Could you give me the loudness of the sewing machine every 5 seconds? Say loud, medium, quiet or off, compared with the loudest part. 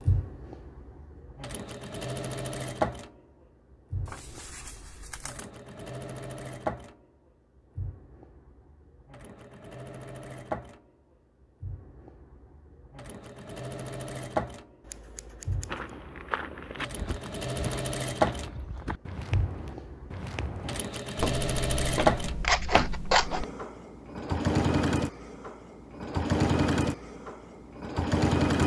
medium, quiet, medium, medium, loud, loud.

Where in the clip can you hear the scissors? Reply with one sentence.
You can hear the scissors from 4.0 to 5.5 s, from 14.8 to 15.9 s and from 22.4 to 23.4 s.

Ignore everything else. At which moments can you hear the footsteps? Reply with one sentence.
The footsteps can be heard from 15.7 to 23.4 s.